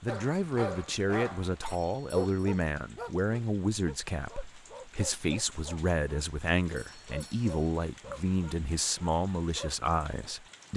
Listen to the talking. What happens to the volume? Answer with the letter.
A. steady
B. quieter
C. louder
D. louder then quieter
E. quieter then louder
A.